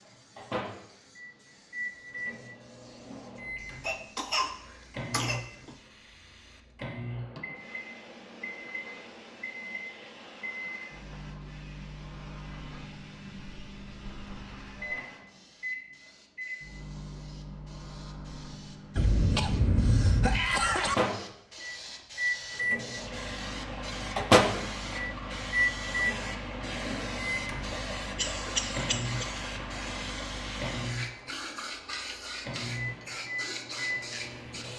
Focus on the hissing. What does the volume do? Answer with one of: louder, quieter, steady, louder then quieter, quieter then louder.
louder.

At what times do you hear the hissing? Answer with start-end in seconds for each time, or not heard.
0.0-34.7.